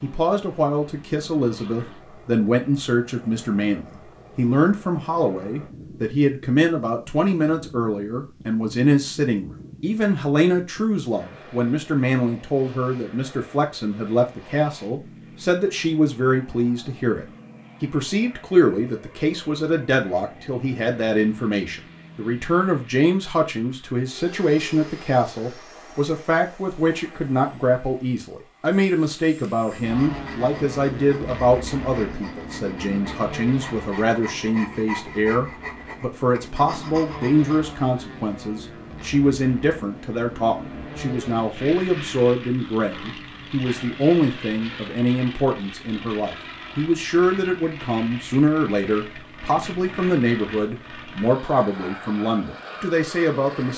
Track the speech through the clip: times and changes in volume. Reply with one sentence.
The speech can be heard from 0.0 to 53.7 s, at a steady volume.